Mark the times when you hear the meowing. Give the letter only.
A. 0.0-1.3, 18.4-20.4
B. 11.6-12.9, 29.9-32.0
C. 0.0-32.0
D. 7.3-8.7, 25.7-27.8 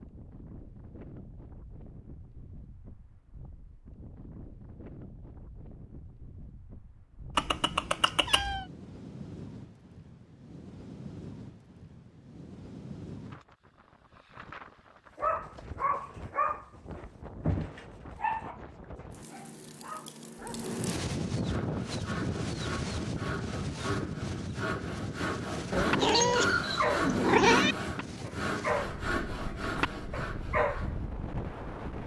D.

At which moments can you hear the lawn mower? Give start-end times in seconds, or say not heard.
not heard.